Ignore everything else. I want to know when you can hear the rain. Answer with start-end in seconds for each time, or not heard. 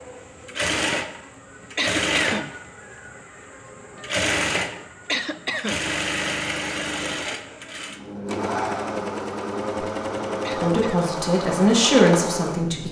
not heard.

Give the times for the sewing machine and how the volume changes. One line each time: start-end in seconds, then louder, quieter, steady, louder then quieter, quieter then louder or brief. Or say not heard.
0.0-12.8 steady.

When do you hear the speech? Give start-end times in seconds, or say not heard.
10.6-12.8.